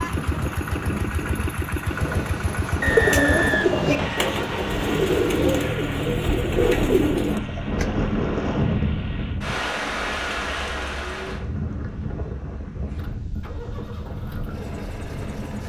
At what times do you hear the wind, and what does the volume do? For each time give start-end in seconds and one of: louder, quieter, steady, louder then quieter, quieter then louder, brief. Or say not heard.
0.0-15.6 louder then quieter.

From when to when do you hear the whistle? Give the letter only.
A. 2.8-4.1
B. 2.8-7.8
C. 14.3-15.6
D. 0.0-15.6
A.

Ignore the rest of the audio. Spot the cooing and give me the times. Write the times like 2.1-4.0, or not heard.
2.8-7.8.